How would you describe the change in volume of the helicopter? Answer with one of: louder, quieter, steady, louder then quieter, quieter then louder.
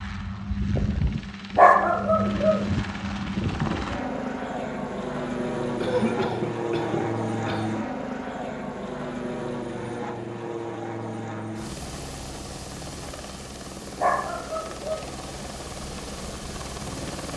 quieter.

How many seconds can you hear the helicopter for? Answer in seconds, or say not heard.
17 s.